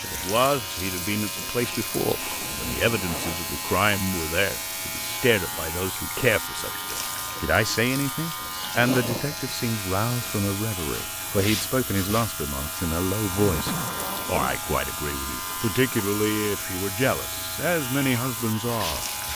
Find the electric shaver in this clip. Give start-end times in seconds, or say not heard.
0.0-19.2.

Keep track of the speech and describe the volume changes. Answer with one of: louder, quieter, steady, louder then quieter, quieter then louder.
steady.